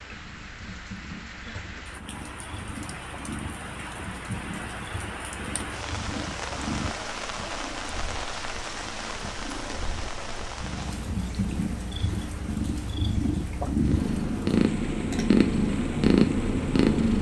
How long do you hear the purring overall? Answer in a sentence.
You can hear the purring for 17 seconds altogether.